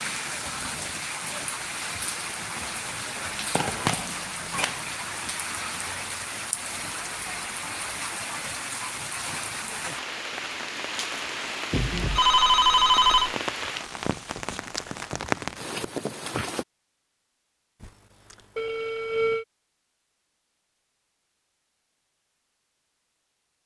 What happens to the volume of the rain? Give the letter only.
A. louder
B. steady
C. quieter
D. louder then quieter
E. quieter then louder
B.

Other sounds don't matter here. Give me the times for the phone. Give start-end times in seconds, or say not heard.
3.5-4.8, 11.7-13.3, 17.8-19.4.